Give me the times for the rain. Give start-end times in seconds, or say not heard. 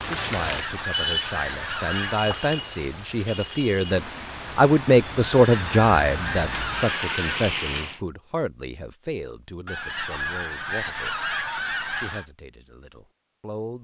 0.0-8.0.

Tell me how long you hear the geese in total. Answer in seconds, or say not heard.
7 s.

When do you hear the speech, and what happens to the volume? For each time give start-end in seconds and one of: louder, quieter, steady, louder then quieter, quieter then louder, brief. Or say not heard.
0.0-11.2 louder then quieter
11.9-13.7 brief.